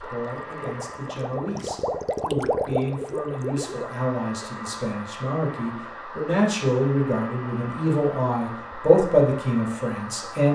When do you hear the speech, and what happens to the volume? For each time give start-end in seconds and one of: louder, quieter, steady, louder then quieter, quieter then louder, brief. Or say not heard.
0.0-10.5 louder.